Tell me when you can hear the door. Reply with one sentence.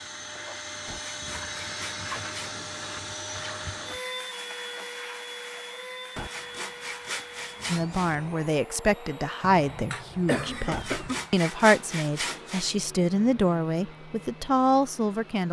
You can't hear the door here.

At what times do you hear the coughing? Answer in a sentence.
You can hear the coughing from 9.5 to 11.2 s.